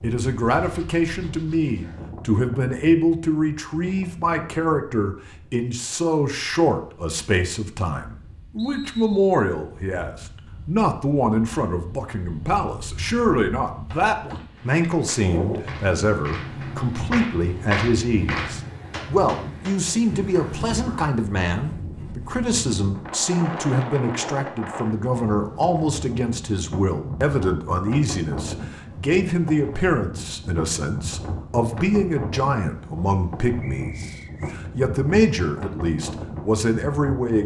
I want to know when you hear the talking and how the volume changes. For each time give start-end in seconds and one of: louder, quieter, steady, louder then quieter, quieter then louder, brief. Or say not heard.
0.0-37.4 steady.